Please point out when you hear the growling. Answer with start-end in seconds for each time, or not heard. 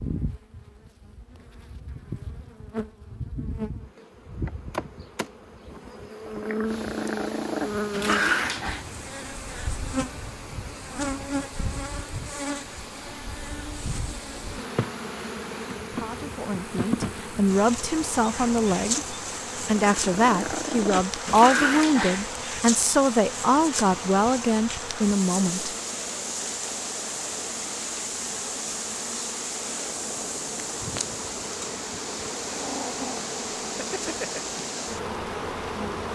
6.4-8.8, 19.8-22.2, 32.5-34.4.